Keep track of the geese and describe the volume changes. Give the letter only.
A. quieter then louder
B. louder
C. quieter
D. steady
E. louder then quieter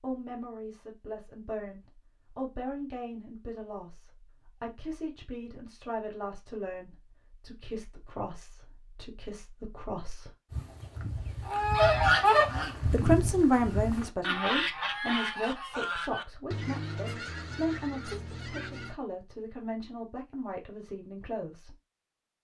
C.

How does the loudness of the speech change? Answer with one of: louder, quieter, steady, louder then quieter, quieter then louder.
louder then quieter.